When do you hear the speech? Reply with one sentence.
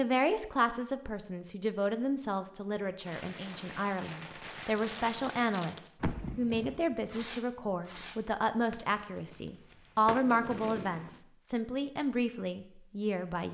The speech can be heard from 0.0 to 13.5 s.